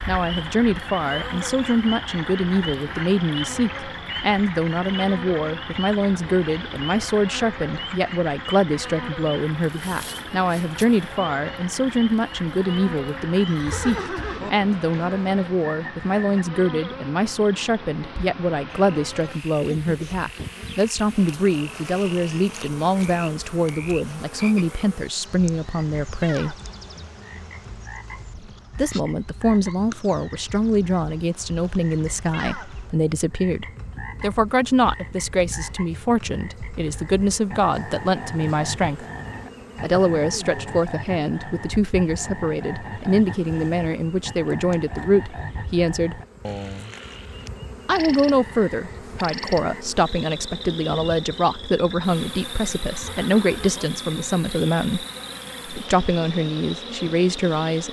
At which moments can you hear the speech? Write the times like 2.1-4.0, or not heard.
0.1-26.6, 28.8-39.0, 39.8-46.1, 47.9-55.0, 55.6-57.8.